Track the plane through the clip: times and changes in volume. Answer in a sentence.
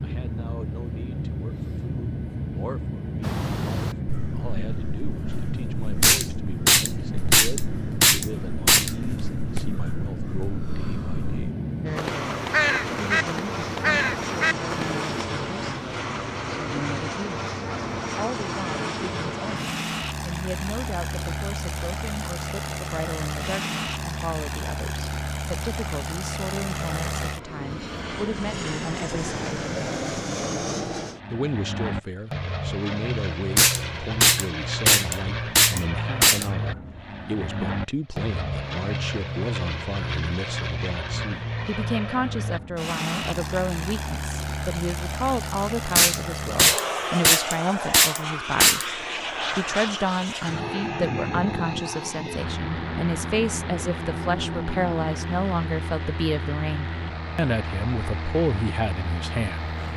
You can hear the plane from 0.0 to 59.9 s, at a steady volume.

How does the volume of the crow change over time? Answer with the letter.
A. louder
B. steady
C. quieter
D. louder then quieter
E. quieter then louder
E.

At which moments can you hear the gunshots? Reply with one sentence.
You can hear the gunshots from 6.0 to 8.9 s, from 33.5 to 36.5 s and from 46.0 to 48.9 s.